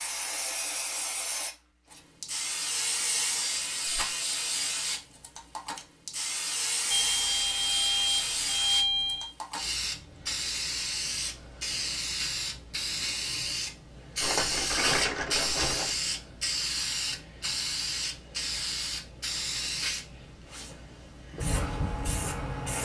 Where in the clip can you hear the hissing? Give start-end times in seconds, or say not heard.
0.0-22.7.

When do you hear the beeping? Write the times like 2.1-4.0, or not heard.
6.9-9.3.